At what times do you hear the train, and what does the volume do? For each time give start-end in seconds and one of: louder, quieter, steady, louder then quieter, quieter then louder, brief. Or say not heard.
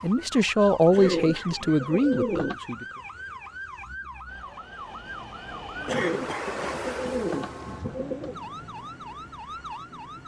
4.2-10.2 louder then quieter.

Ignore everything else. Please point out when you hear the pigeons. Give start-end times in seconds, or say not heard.
0.9-2.5, 5.9-8.3.